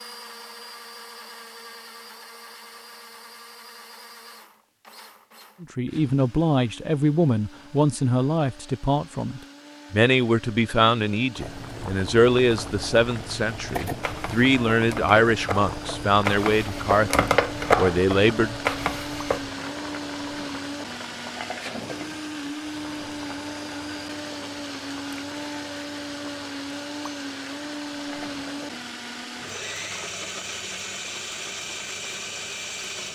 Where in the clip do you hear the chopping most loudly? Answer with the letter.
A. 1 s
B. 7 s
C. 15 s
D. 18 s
D.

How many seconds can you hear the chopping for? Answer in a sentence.
The chopping can be heard for 6 seconds in total.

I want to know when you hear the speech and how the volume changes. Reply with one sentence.
You can hear the speech from 5.6 to 18.6 s, at a steady volume.